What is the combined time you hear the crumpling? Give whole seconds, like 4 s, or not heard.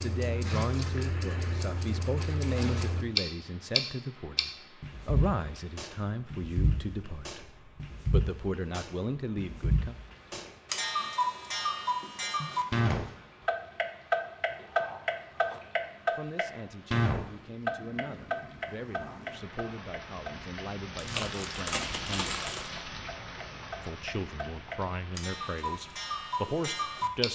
3 s.